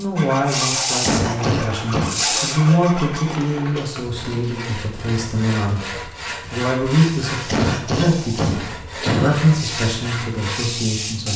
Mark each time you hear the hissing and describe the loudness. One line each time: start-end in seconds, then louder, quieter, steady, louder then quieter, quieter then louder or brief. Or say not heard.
0.0-2.6 brief
7.0-11.3 quieter then louder.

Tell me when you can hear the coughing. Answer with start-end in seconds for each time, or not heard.
1.0-2.1, 7.5-9.3.